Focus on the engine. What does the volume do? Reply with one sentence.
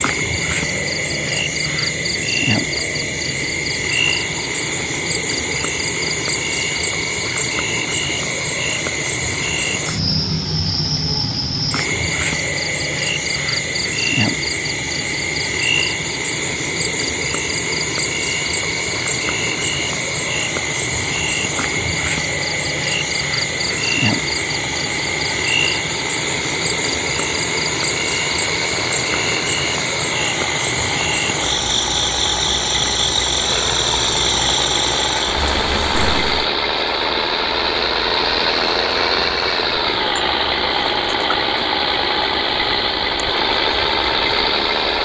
The volume of the engine goes up.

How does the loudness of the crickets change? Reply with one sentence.
The volume of the crickets goes down.